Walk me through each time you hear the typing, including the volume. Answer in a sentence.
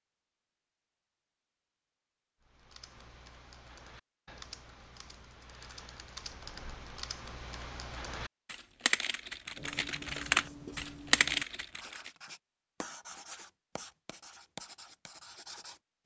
The typing can be heard from 2.4 to 12.1 s, getting louder.